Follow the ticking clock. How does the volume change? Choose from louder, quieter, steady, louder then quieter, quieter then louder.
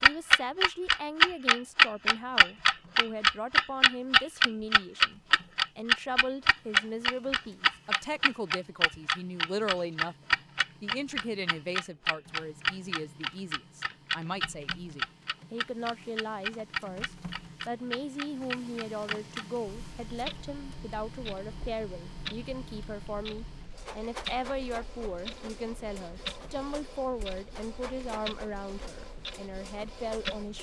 quieter.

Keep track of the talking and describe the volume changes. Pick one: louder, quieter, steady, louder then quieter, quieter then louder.
steady.